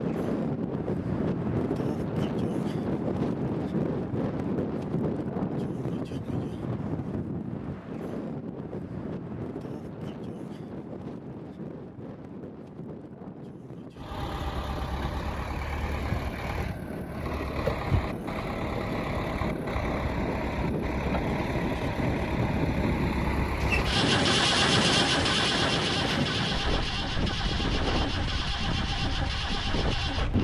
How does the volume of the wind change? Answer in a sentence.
The loudness of the wind goes down, then up.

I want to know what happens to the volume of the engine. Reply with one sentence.
The volume of the engine goes up, then down.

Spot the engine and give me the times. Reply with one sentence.
The engine can be heard from 13.9 to 30.3 s.